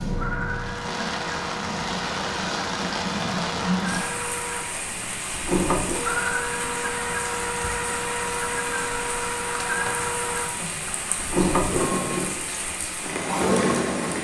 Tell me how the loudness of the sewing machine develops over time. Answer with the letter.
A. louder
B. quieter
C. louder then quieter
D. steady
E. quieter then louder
A.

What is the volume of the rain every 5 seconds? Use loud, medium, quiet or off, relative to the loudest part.
loud, medium, loud.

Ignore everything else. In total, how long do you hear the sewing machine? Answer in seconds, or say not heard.
14 s.